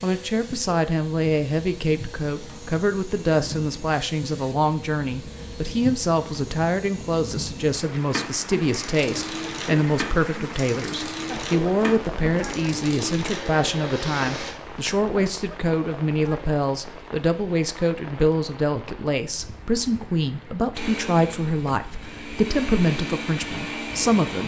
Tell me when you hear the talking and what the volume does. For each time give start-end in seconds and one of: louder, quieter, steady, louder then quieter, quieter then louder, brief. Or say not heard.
0.0-24.4 steady.